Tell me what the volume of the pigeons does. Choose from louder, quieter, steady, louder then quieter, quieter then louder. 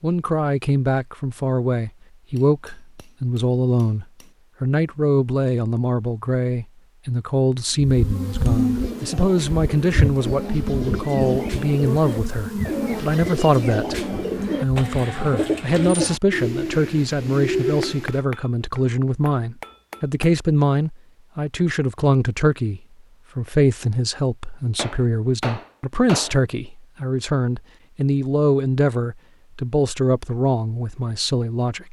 louder.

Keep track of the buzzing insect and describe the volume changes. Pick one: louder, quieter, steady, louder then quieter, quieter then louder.
quieter.